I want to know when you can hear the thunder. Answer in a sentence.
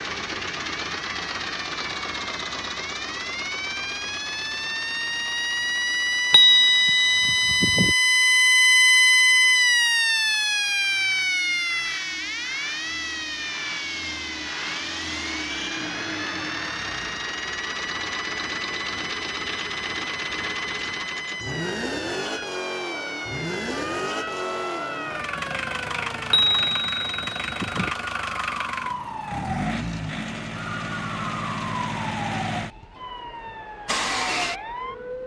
The thunder can't be heard in this clip.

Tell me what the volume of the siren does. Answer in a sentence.
The volume of the siren goes up, then down.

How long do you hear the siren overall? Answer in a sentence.
The siren can be heard for 35 seconds in total.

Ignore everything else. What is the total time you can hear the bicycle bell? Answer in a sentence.
The bicycle bell can be heard for 3 seconds in total.